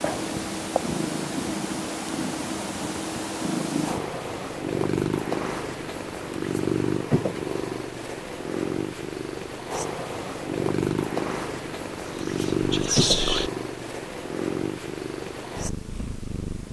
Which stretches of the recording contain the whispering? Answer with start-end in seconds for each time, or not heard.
12.2-13.5.